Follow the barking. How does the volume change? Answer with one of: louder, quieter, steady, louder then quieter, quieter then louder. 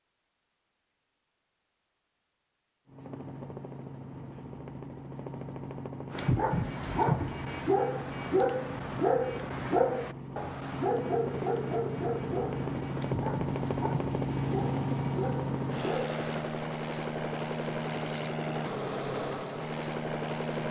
quieter.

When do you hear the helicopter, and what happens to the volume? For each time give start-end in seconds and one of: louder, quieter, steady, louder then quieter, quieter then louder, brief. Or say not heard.
2.9-20.6 louder.